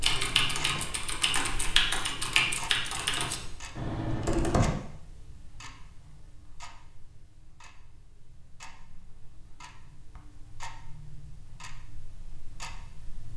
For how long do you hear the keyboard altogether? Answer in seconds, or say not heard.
5 s.